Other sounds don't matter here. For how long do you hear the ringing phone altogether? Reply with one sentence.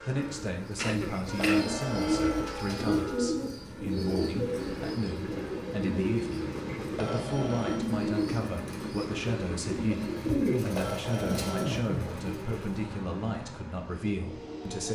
The ringing phone can be heard for 4 seconds in total.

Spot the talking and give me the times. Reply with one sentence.
You can hear the talking from 0.1 to 14.9 s.